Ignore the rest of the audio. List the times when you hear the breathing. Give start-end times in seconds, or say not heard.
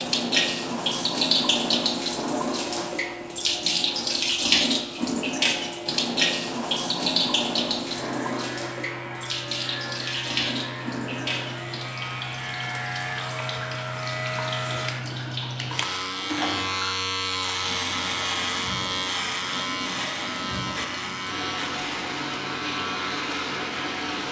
not heard.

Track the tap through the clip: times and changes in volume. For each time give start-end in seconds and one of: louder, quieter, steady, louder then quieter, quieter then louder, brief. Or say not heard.
0.0-24.2 quieter.